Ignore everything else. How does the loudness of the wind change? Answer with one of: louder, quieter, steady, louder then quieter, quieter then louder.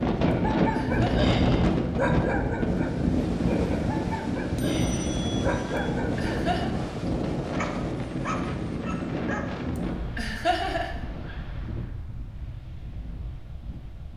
quieter.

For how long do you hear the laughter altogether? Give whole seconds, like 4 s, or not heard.
2 s.